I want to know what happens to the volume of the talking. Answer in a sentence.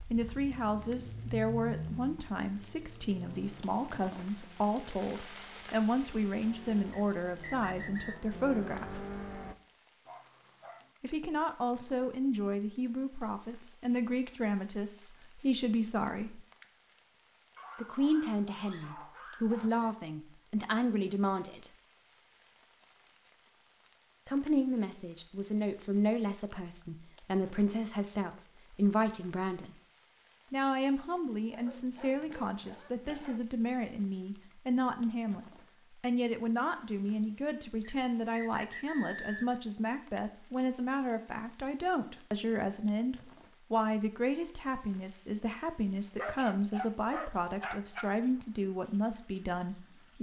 The volume of the talking stays about the same.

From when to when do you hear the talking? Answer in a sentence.
You can hear the talking from 0.1 to 9.1 s, from 11.0 to 16.4 s, from 17.8 to 21.7 s, from 24.2 to 29.7 s and from 30.5 to 50.1 s.